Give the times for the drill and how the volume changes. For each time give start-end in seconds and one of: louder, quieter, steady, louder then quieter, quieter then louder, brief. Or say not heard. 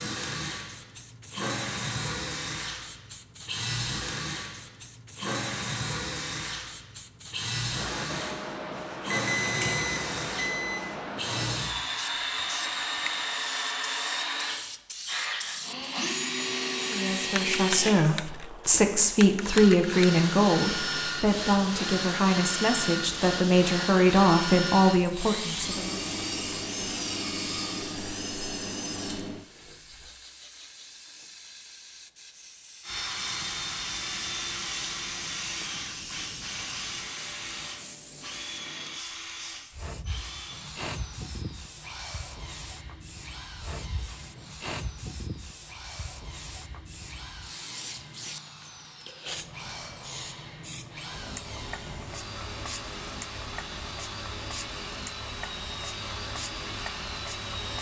0.0-30.1 steady
32.8-57.7 quieter then louder.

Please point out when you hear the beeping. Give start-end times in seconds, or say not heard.
9.1-10.8.